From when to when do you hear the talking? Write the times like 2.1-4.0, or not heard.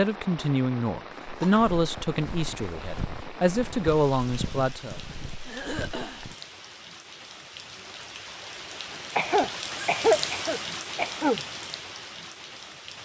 0.0-5.0.